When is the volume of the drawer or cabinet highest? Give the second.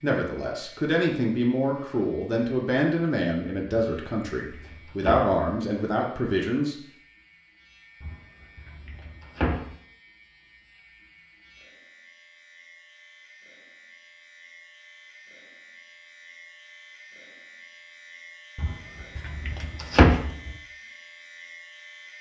20 s.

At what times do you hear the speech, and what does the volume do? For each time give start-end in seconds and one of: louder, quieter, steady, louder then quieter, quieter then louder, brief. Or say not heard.
0.0-6.8 steady.